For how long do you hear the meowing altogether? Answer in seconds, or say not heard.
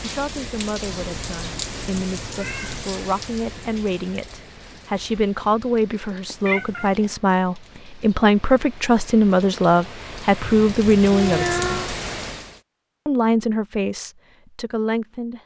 4 s.